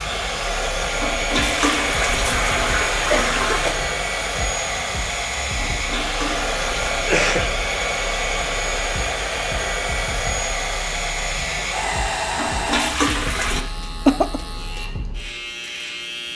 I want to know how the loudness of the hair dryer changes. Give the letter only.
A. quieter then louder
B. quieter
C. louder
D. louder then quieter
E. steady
E.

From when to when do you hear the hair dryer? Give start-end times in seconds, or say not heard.
0.0-12.9.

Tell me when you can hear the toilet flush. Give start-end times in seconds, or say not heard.
1.0-3.8, 5.5-7.0, 12.3-13.7.